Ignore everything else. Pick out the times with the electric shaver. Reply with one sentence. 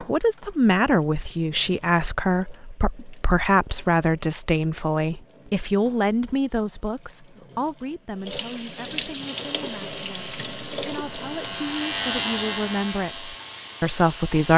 You can hear the electric shaver from 9.2 to 14.5 s.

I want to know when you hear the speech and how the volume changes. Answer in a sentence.
The speech can be heard from 0.0 to 14.5 s, getting quieter then louder.